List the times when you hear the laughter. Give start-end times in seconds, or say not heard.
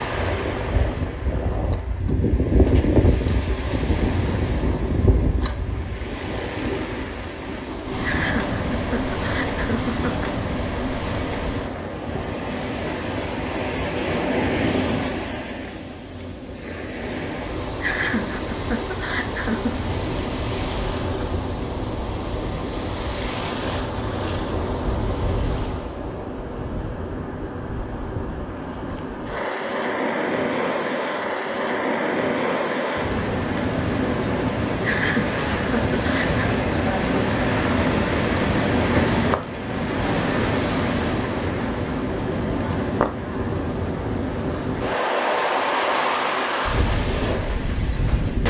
8.0-10.3, 17.8-19.9, 34.8-36.5.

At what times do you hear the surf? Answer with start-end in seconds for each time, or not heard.
0.0-48.4.